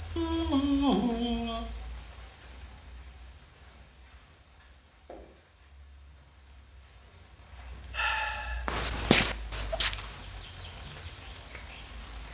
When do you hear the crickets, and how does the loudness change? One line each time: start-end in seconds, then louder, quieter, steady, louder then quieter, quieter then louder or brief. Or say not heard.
0.0-12.2 quieter then louder.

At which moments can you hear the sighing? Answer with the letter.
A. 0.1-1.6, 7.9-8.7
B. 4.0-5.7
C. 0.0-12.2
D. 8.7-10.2
A.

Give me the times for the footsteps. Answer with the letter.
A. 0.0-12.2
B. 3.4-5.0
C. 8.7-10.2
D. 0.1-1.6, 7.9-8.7
C.